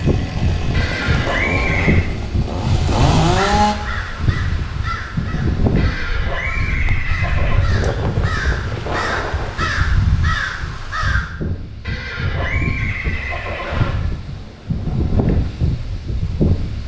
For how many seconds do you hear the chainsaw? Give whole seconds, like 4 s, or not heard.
4 s.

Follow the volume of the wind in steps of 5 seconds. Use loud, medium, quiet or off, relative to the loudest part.
loud, loud, medium, loud.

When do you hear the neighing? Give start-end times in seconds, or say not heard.
0.7-2.0, 5.8-7.7, 11.8-14.1.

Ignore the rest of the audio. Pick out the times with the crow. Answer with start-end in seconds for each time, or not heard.
3.3-11.3.